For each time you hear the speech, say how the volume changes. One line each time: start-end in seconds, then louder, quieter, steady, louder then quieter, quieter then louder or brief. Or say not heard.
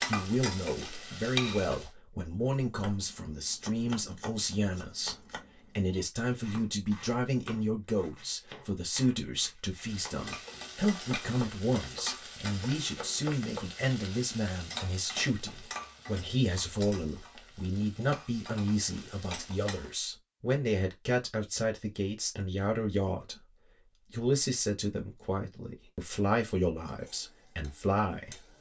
0.1-28.5 steady.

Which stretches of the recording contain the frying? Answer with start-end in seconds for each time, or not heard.
0.0-1.9, 9.8-19.9, 26.9-28.5.